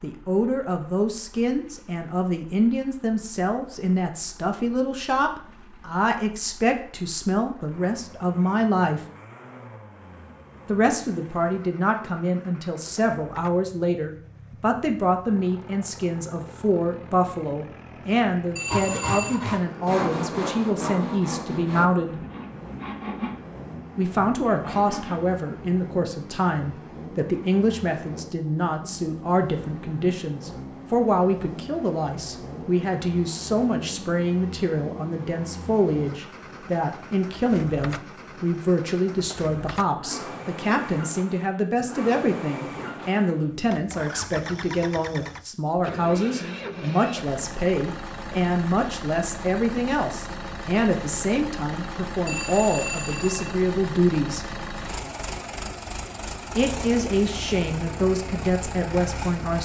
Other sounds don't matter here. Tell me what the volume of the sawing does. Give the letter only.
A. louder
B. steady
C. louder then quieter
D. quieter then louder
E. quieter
E.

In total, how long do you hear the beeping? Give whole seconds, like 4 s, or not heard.
2 s.